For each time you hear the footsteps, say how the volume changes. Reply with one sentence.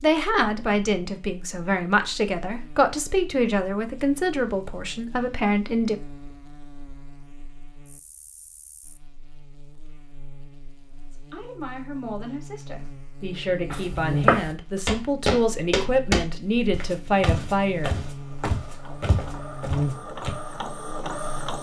The footsteps can be heard from 13.7 to 20.3 s, getting quieter.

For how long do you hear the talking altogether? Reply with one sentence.
The talking can be heard for 13 seconds in total.